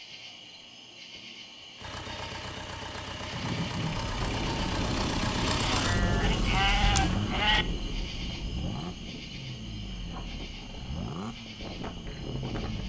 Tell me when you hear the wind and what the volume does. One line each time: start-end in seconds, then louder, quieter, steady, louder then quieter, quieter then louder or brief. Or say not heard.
3.3-12.8 quieter then louder.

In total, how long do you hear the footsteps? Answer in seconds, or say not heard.
not heard.